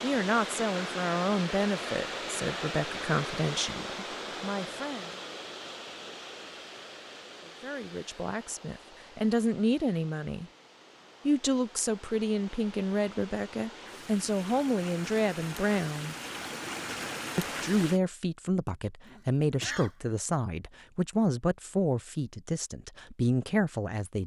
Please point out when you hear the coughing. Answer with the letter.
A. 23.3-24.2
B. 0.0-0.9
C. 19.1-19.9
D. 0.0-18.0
C.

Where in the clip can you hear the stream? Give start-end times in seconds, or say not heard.
0.0-18.0.